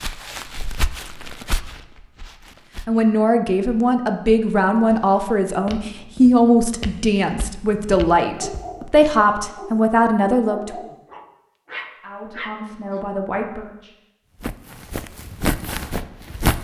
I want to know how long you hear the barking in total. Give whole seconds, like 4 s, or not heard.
5 s.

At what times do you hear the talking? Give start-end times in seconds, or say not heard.
2.9-10.8, 12.0-13.9.